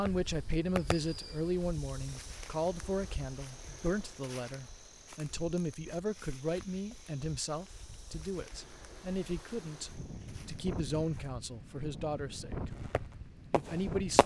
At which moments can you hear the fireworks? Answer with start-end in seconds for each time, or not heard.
0.0-1.6, 12.7-14.2.